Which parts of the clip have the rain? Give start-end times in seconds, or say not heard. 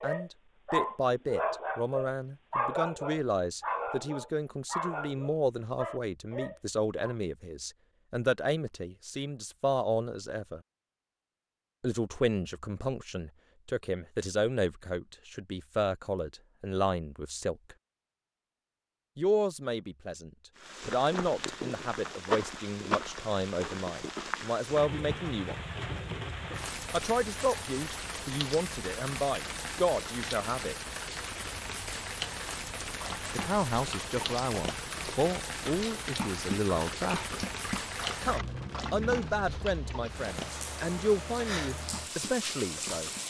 20.6-43.2.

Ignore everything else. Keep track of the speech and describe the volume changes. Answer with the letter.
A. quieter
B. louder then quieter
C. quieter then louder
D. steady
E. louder
D.